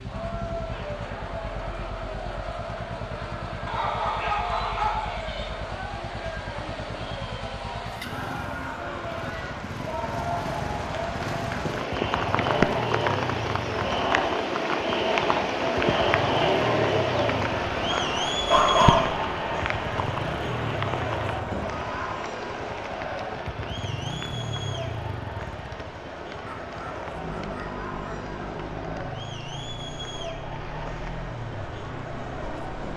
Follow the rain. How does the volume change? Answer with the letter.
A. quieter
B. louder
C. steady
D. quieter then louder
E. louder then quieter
E.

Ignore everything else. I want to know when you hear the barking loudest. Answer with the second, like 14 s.
19 s.